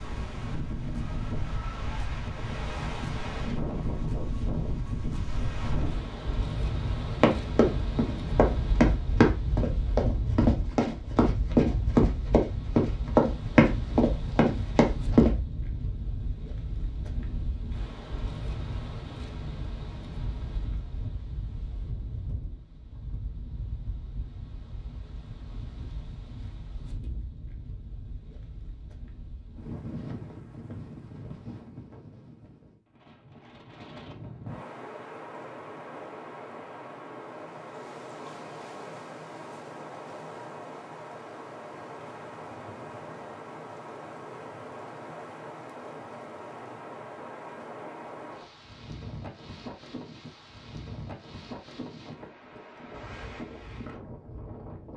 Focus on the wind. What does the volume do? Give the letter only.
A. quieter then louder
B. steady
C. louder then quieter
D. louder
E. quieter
E.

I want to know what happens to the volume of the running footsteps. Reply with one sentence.
The loudness of the running footsteps stays about the same.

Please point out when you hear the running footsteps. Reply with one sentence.
You can hear the running footsteps from 7.2 to 15.3 s.